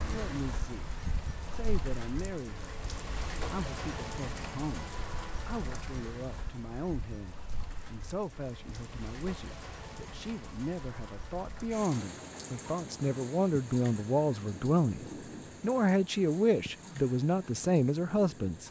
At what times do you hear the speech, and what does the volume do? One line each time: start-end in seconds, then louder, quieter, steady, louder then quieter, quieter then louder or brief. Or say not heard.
0.0-0.8 brief
1.4-2.8 brief
3.5-18.6 louder.